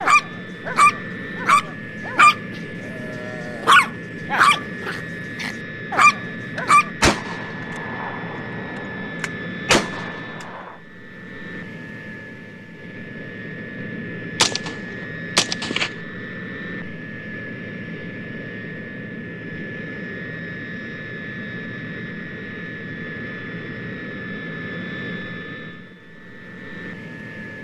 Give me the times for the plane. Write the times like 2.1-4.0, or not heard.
0.0-27.5.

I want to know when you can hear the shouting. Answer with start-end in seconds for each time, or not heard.
not heard.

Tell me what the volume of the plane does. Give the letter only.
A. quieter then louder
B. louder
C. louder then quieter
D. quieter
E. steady
E.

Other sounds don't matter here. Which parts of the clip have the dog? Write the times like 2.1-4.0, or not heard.
0.0-2.4, 3.0-6.9.